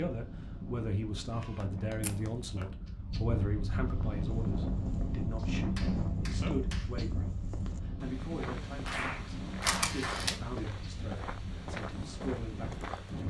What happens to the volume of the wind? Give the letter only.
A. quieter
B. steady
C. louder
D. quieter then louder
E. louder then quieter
E.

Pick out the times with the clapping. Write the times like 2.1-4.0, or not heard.
1.3-2.6, 5.3-7.0, 8.8-10.3.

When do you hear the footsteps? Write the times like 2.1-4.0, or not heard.
4.0-13.2.